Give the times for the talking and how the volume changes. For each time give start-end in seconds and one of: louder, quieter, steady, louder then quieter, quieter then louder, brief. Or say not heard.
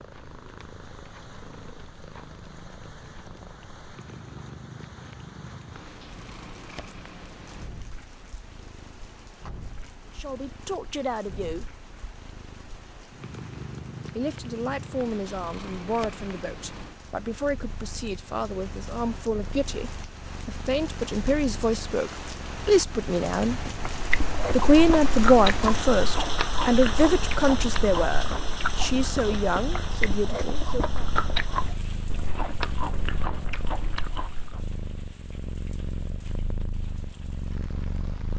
10.2-11.7 brief
14.2-23.6 louder
24.5-31.1 quieter.